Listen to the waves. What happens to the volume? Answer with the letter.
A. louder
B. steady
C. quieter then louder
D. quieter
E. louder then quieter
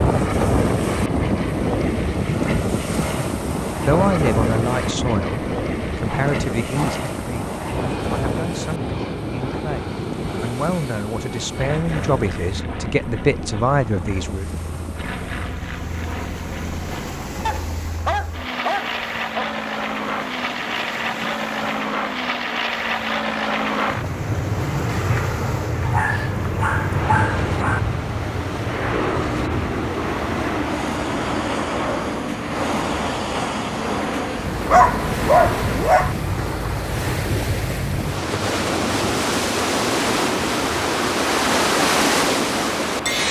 C.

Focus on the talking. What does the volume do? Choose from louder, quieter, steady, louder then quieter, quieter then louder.
quieter then louder.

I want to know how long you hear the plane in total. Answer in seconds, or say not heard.
43 s.